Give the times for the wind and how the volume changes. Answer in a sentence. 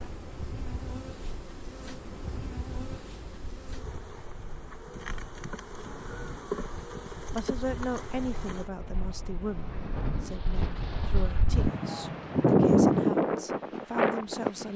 The wind can be heard from 0.0 to 14.7 s, getting louder.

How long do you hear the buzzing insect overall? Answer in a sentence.
The buzzing insect can be heard for 9 seconds in total.